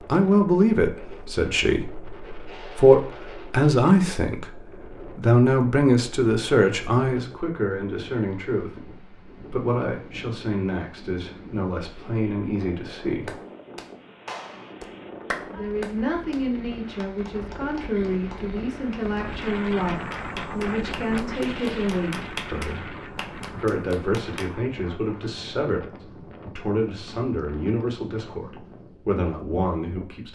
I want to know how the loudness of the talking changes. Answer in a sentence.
The volume of the talking goes down.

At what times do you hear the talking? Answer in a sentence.
The talking can be heard from 0.1 to 13.3 s and from 15.5 to 30.3 s.